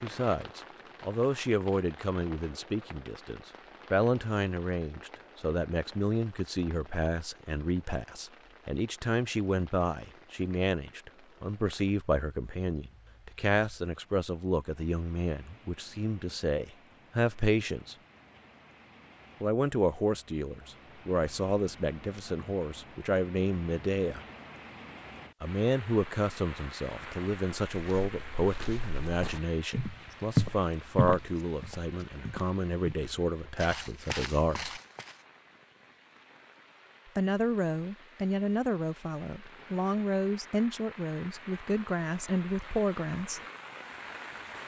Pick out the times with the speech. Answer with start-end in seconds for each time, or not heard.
0.0-17.9, 19.4-24.2, 25.4-34.8, 37.1-43.4.